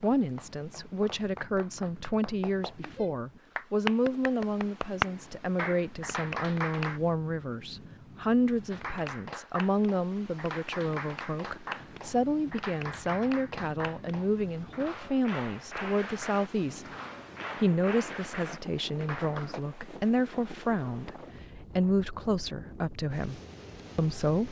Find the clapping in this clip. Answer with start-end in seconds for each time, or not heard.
0.0-7.0, 8.7-19.6.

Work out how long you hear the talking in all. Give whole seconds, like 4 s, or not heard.
24 s.